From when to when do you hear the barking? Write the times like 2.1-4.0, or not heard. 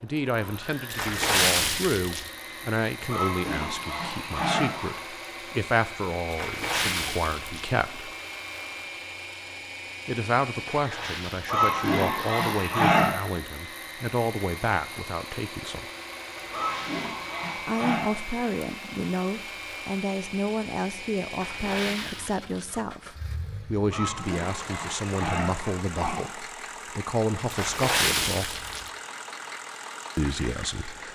3.0-5.0, 11.4-13.1, 16.5-18.1, 23.9-26.3.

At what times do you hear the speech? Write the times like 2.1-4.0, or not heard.
0.0-8.1, 10.1-15.8, 17.6-28.6, 30.1-31.0.